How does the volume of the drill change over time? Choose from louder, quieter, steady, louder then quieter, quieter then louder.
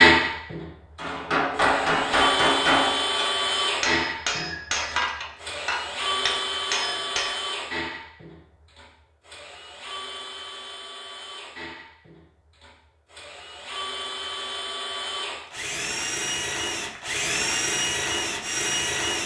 quieter then louder.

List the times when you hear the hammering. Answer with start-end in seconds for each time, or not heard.
0.9-7.3.